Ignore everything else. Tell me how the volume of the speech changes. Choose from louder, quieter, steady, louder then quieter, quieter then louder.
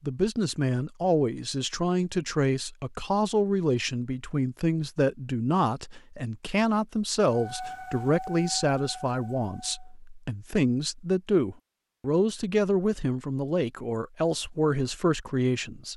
steady.